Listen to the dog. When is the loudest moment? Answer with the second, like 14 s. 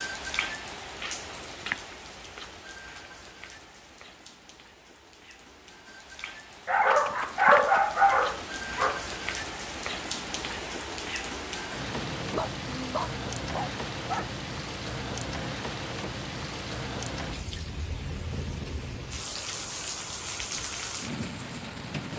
8 s.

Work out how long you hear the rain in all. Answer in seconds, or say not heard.
22 s.